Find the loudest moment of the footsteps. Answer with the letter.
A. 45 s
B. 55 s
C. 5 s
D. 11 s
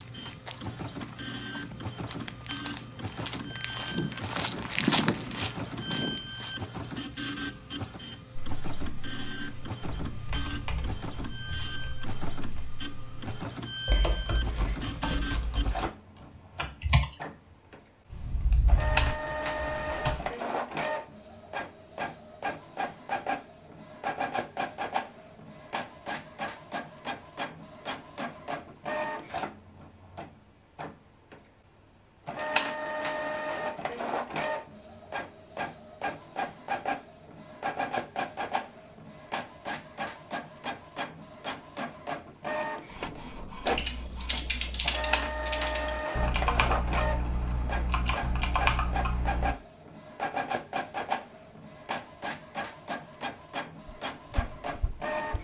C.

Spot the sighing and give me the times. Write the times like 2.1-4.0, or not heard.
not heard.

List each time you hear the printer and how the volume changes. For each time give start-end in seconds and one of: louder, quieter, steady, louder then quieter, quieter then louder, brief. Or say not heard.
0.0-55.3 steady.